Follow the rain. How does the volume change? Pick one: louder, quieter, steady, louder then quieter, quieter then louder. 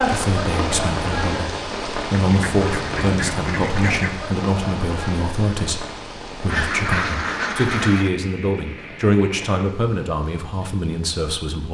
quieter.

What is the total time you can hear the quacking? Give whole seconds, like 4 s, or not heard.
4 s.